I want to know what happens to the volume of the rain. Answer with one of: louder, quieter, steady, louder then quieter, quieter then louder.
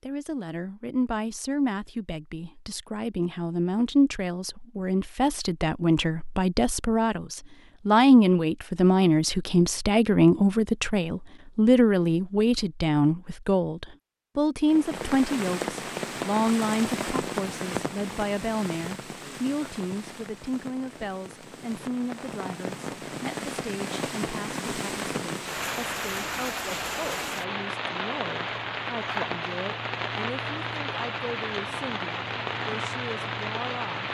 quieter then louder.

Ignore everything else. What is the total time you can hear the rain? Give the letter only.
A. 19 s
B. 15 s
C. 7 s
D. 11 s
A.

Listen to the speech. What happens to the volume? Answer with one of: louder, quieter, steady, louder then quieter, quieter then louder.
louder then quieter.